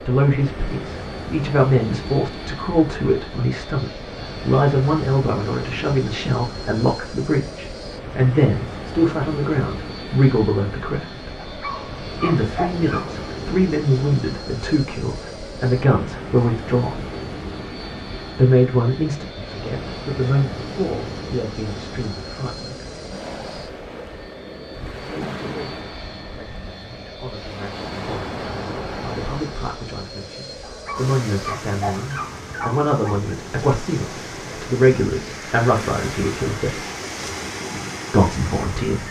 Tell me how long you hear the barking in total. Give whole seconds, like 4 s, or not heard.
4 s.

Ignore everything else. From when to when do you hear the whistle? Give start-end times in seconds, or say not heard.
not heard.